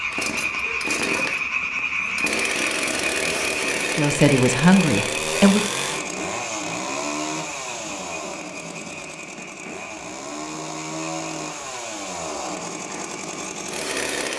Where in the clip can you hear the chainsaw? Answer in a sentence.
The chainsaw can be heard from 0.1 to 14.3 s.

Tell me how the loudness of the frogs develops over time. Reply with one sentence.
The loudness of the frogs goes down.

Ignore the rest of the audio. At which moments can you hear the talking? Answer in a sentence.
The talking can be heard from 4.0 to 5.7 s.